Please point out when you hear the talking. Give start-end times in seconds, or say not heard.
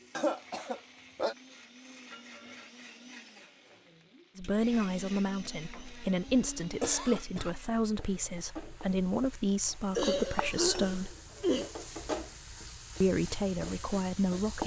4.3-11.2, 13.0-14.6.